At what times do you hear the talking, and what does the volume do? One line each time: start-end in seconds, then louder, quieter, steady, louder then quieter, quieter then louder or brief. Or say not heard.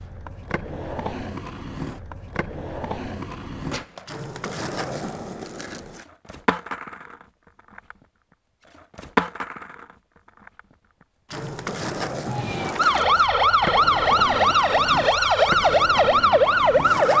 not heard.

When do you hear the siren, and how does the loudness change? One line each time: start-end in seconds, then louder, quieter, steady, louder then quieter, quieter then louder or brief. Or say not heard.
12.2-17.1 steady.